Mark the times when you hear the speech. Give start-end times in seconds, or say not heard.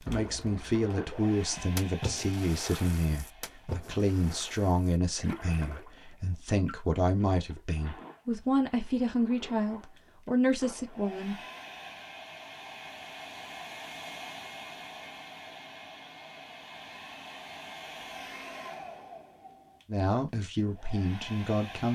0.0-11.3, 19.9-21.9.